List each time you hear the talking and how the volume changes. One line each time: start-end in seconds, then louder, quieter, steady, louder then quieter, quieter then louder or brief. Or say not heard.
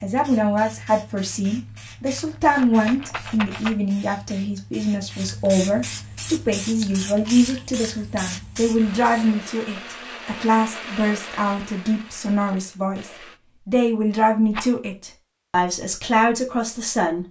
0.0-17.2 steady.